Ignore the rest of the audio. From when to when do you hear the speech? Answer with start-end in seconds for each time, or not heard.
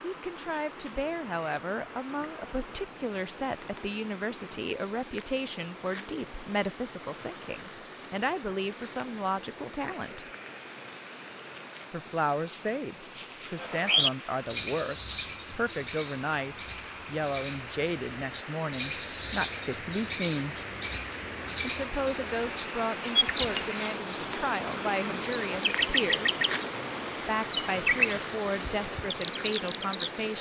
0.0-10.2, 11.9-20.6, 21.6-26.4, 27.2-30.3.